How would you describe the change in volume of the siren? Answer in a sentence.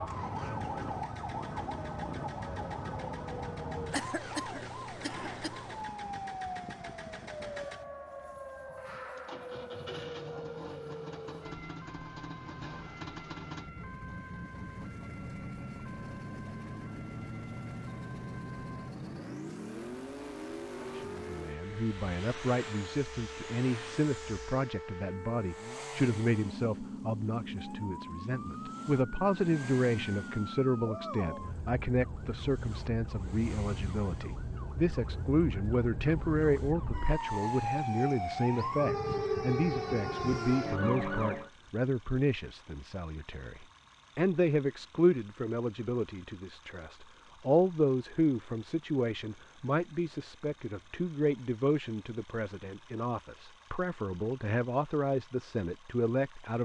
The loudness of the siren goes down, then up.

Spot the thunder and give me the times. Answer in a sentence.
The thunder can't be heard in this clip.